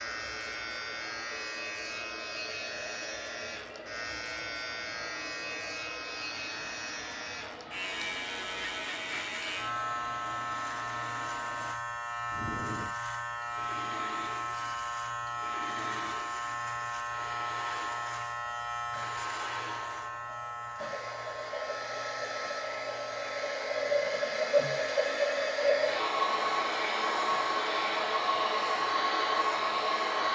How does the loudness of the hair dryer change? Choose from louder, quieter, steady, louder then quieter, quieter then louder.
louder.